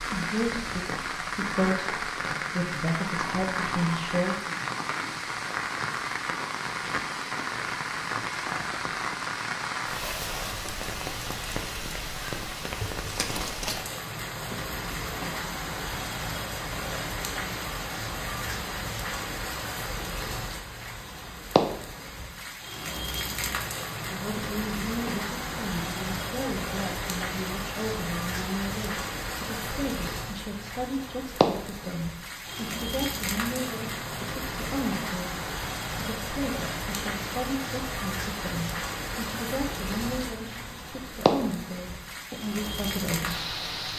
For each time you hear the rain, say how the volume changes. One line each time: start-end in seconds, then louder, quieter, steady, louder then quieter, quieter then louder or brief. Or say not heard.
0.0-43.9 steady.